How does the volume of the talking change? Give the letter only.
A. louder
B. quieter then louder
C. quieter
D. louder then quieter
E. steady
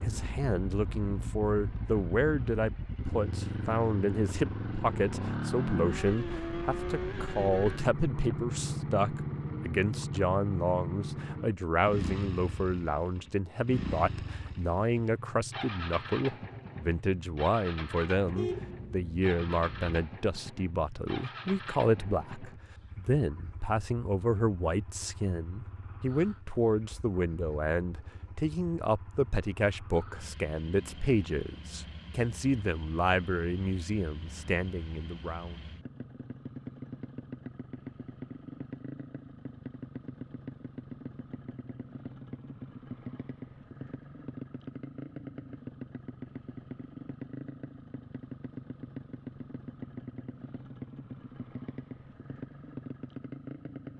E.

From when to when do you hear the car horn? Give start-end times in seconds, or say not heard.
18.1-20.0.